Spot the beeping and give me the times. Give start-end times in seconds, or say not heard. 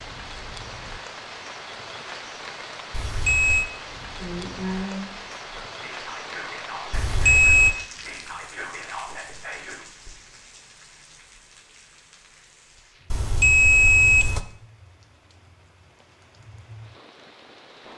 2.9-3.7, 6.9-7.8, 13.1-14.4.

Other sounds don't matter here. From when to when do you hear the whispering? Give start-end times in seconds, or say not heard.
4.1-10.1.